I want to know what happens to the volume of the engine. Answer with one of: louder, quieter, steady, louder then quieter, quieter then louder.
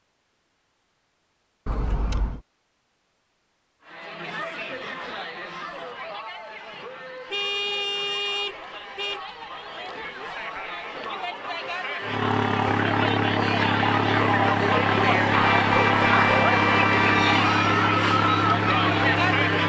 steady.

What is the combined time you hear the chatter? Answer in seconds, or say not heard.
16 s.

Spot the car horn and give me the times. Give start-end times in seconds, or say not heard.
1.6-2.4, 7.3-9.2, 15.3-17.4.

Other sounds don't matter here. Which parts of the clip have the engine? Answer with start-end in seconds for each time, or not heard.
12.0-19.6.